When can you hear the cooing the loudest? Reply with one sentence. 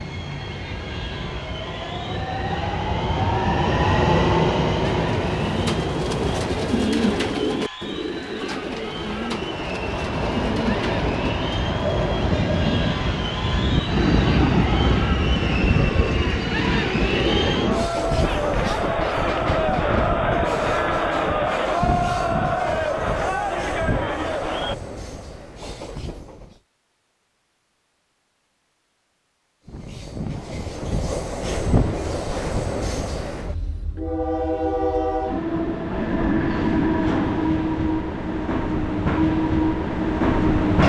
The volume of the cooing peaks at 7 seconds.